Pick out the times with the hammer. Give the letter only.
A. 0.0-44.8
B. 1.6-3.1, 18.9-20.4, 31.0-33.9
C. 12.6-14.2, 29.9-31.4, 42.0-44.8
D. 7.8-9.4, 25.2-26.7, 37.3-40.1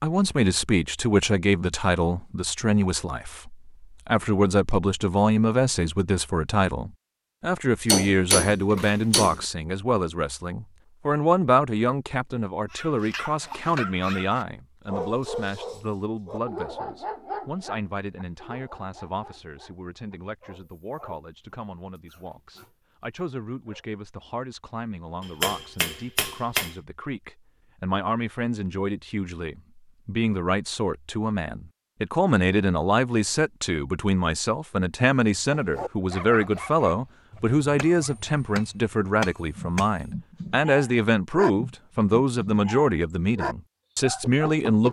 D.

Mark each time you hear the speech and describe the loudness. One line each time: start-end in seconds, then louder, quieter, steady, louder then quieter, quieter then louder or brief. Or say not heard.
0.0-44.8 quieter then louder.